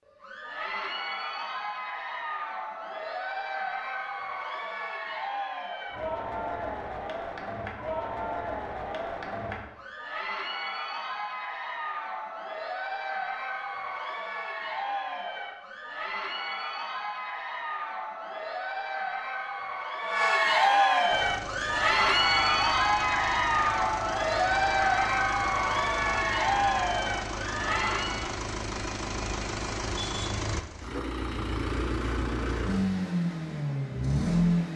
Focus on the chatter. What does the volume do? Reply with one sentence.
The volume of the chatter goes up.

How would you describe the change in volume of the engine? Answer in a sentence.
The volume of the engine goes up.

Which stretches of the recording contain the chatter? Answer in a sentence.
The chatter can be heard from 0.1 to 28.4 s.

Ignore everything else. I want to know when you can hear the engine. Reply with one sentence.
The engine can be heard from 21.1 to 34.7 s.